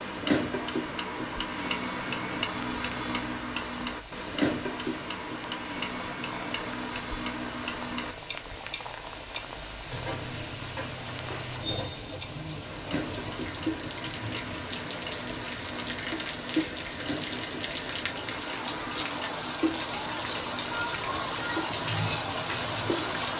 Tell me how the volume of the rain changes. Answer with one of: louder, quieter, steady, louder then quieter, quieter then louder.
louder.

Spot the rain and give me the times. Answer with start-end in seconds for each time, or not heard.
0.0-23.3.